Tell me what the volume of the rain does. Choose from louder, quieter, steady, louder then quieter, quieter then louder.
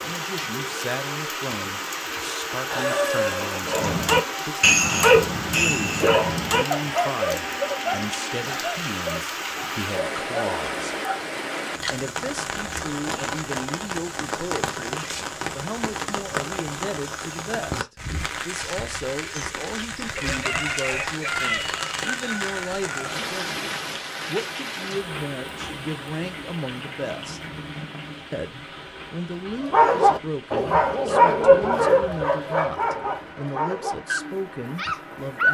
quieter.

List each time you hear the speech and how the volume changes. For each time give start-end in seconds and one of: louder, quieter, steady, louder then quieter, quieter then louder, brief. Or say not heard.
0.0-10.9 steady
11.9-27.4 steady
28.3-35.4 steady.